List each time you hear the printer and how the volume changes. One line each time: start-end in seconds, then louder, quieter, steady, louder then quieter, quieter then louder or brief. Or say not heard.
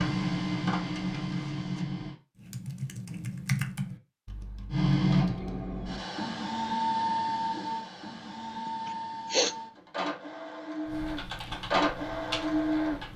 0.0-2.1 brief
4.7-13.1 quieter then louder.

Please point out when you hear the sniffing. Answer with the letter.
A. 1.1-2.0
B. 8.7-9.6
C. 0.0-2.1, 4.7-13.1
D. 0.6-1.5
B.